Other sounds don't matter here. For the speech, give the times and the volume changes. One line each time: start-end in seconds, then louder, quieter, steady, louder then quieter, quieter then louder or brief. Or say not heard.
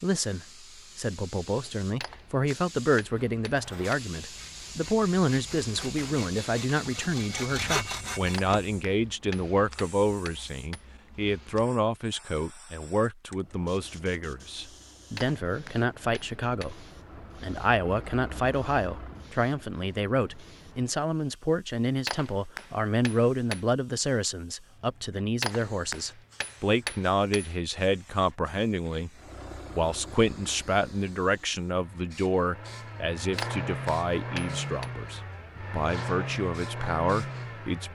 0.0-37.9 steady.